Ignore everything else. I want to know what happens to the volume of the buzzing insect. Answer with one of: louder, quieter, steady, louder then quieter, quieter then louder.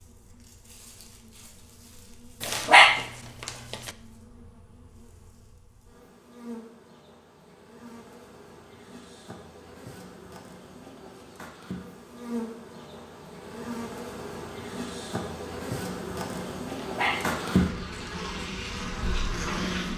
louder.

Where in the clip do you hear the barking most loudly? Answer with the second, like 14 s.
3 s.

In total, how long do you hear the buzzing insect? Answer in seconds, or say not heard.
20 s.